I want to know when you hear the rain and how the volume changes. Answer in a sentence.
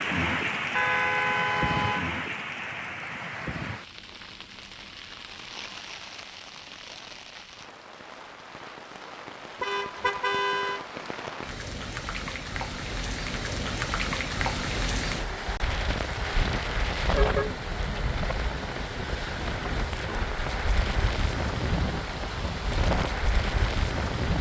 You can hear the rain from 0.0 to 24.3 s, getting quieter then louder.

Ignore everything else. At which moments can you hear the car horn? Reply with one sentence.
You can hear the car horn from 0.8 to 2.1 s, from 9.6 to 10.8 s and from 17.1 to 18.5 s.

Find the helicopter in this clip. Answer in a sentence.
The helicopter can't be heard in this clip.